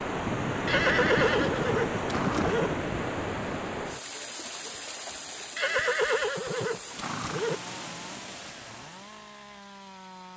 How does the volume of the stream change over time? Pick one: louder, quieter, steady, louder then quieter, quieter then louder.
quieter.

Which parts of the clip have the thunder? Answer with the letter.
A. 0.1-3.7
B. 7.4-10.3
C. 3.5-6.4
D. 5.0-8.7
A.